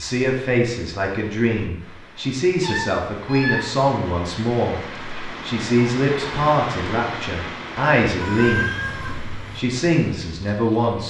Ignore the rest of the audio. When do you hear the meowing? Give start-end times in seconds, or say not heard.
2.6-3.7, 8.2-9.6.